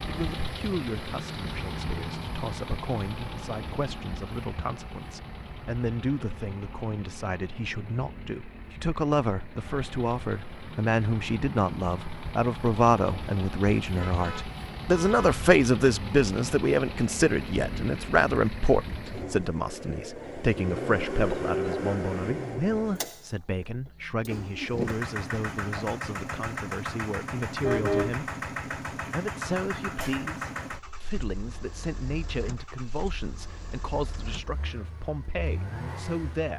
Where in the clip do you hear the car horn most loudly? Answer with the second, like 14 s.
28 s.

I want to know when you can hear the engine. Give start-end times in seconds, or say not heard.
0.0-36.5.